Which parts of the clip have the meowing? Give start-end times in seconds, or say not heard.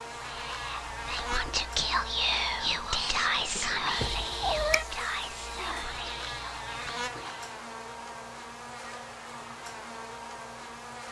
3.5-4.8.